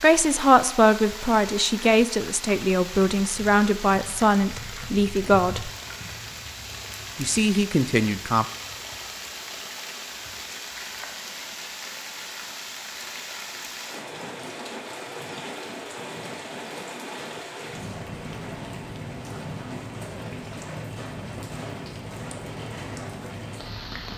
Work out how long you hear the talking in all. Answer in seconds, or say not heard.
7 s.